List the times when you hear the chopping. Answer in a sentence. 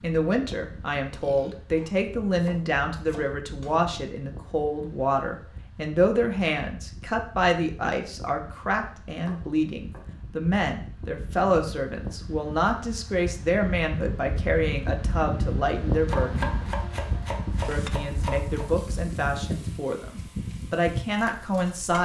You can hear the chopping from 1.8 to 3.8 s, from 9.2 to 10.1 s and from 16.1 to 18.6 s.